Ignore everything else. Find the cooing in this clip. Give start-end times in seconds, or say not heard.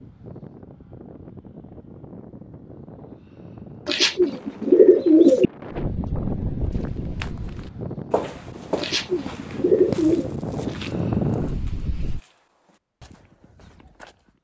3.9-5.5, 8.8-10.3.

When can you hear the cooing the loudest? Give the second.
5 s.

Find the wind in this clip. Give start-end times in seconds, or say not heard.
0.0-12.2.